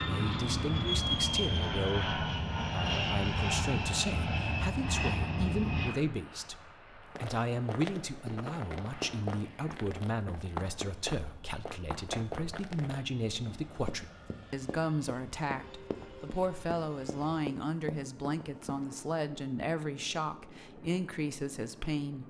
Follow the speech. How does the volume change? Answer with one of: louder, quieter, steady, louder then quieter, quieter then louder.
steady.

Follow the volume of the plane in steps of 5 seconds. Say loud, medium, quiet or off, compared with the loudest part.
loud, medium, quiet, quiet, quiet.